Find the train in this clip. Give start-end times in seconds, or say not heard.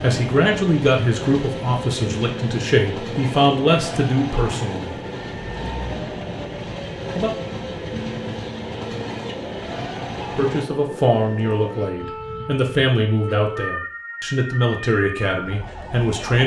0.0-10.7.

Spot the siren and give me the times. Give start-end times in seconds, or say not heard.
0.1-16.4.